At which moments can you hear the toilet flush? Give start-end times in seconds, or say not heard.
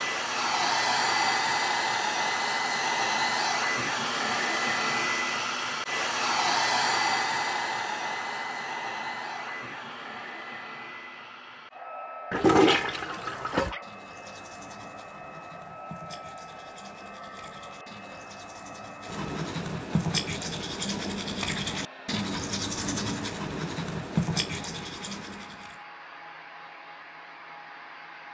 12.3-13.8.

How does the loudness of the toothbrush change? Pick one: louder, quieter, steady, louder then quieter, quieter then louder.
louder.